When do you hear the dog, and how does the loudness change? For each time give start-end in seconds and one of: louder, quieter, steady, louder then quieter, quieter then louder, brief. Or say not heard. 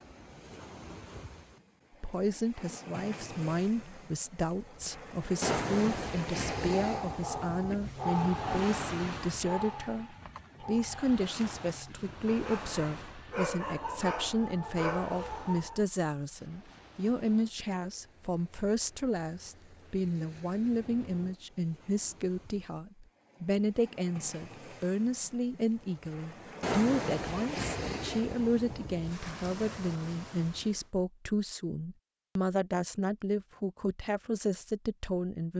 6.6-15.8 quieter then louder.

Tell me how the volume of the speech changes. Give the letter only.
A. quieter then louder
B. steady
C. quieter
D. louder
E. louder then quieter
B.